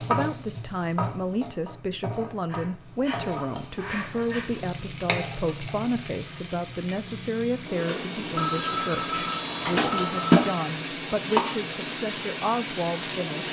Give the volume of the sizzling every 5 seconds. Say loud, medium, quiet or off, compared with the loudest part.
medium, medium, loud.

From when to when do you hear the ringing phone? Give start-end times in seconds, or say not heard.
2.5-4.7, 8.3-10.4.